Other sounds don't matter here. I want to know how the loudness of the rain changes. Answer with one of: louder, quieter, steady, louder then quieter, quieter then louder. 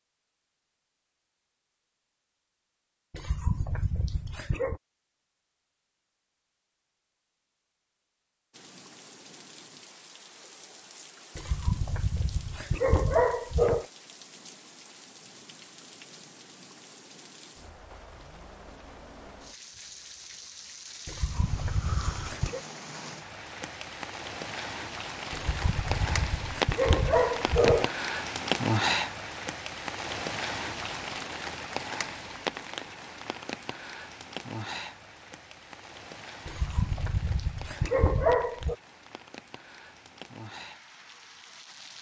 louder then quieter.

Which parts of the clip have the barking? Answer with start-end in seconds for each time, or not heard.
3.1-4.8, 11.3-13.8, 21.1-22.6, 25.3-27.9, 36.5-38.8.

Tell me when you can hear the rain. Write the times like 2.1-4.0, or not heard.
8.5-41.9.